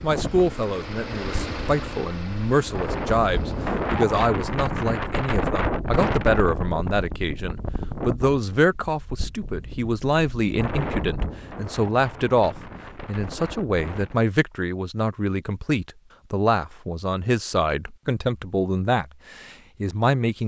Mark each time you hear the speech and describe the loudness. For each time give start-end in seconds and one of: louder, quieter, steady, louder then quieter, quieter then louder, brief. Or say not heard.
0.0-20.4 steady.